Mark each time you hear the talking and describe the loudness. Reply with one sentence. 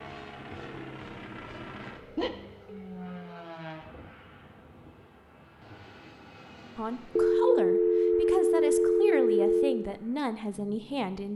You can hear the talking from 6.8 to 11.3 s, at a steady volume.